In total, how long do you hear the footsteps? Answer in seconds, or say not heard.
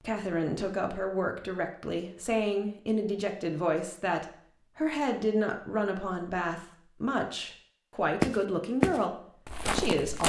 2 s.